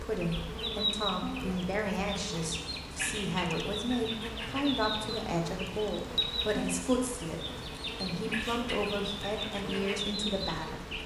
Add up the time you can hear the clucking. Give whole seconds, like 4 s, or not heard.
11 s.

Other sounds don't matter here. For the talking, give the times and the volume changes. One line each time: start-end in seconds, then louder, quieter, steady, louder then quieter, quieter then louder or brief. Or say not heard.
0.0-10.8 steady.